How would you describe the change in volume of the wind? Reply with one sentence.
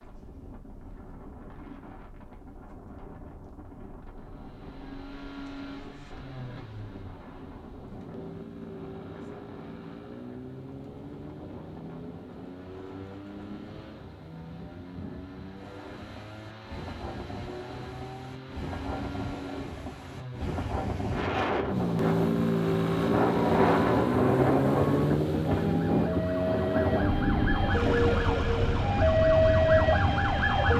The loudness of the wind goes up.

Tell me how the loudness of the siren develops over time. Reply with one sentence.
The volume of the siren goes up.